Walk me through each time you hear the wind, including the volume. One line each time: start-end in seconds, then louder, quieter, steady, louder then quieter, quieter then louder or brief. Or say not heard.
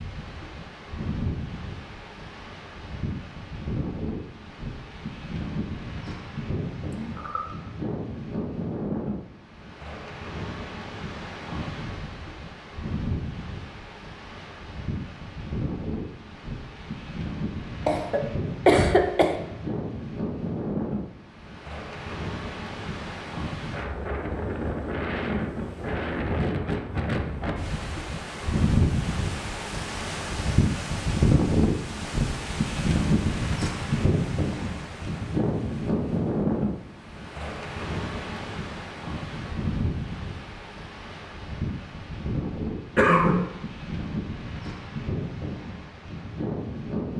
0.0-47.1 louder then quieter.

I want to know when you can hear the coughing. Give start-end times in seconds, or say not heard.
6.9-7.4, 17.9-19.4, 43.0-43.5.